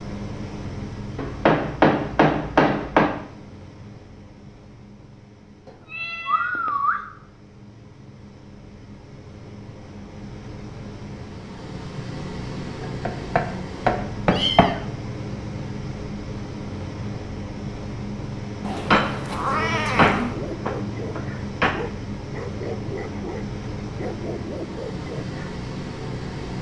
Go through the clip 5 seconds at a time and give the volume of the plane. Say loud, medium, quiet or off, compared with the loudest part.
medium, quiet, loud, loud, loud, loud.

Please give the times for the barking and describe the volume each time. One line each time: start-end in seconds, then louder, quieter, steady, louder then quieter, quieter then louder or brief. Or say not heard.
20.2-25.6 steady.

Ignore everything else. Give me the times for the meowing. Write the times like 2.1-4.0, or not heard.
5.7-7.0, 14.3-14.8, 18.6-20.4.